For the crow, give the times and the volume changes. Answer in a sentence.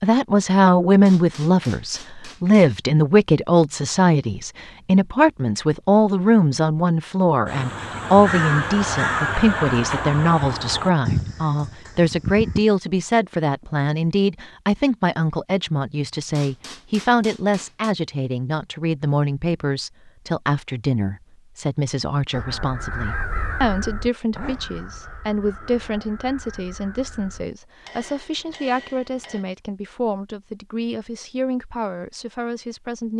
The crow can be heard from 7.5 to 12.7 s, getting quieter; and from 22.3 to 27.4 s, getting quieter.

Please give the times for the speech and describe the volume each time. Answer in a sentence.
The speech can be heard from 0.0 to 33.1 s, getting quieter.